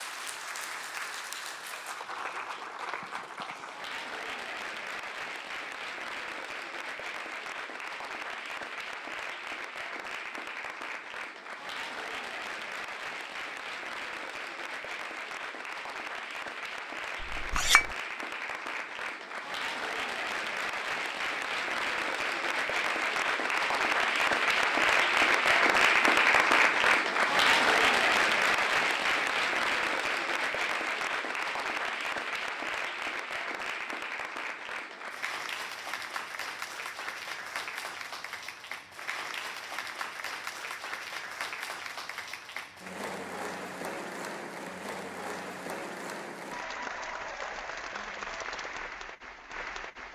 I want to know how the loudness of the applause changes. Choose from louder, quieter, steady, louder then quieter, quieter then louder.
louder then quieter.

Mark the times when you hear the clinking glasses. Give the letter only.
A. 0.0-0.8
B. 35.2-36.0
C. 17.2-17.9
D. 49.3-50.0
C.